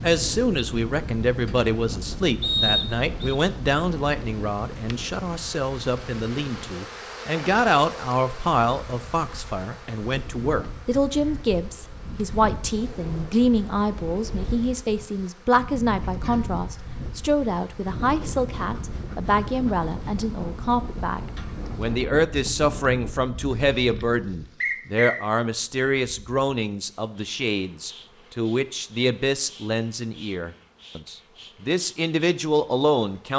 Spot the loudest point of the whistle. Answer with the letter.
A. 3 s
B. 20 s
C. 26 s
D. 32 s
A.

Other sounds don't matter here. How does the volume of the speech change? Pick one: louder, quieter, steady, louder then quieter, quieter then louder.
steady.